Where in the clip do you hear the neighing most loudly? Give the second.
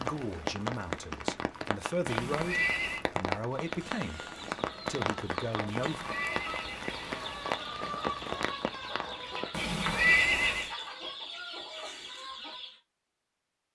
10 s.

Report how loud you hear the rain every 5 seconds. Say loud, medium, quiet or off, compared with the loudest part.
loud, loud, off.